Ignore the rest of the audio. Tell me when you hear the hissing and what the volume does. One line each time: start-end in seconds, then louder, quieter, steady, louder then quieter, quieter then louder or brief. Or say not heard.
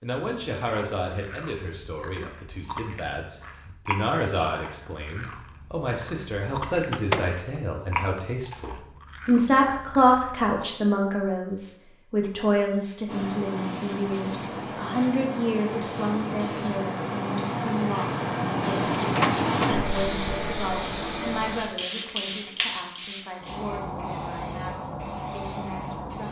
13.1-26.2 louder then quieter.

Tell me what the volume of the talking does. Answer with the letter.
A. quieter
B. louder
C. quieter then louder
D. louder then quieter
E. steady
D.